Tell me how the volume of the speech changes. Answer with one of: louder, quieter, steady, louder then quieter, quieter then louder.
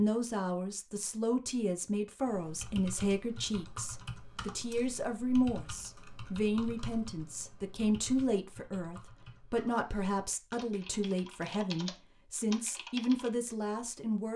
steady.